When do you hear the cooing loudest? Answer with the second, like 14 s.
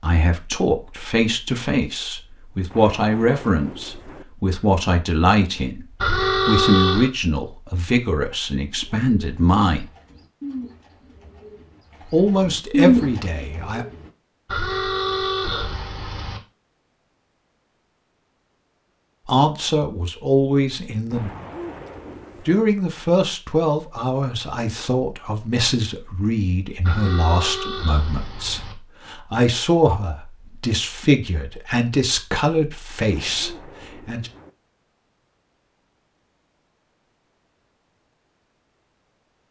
13 s.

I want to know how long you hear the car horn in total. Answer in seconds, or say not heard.
5 s.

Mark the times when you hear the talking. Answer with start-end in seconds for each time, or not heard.
0.0-9.8, 12.1-13.8, 19.2-21.3, 22.4-34.3.